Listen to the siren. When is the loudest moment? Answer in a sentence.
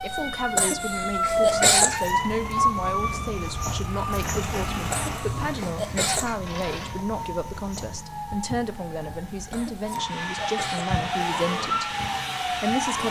The volume of the siren peaks at 2 seconds.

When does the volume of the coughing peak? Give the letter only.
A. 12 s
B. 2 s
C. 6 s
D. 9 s
B.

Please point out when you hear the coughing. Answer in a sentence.
The coughing can be heard from 0.6 to 2.0 s, from 4.9 to 6.3 s and from 9.5 to 11.5 s.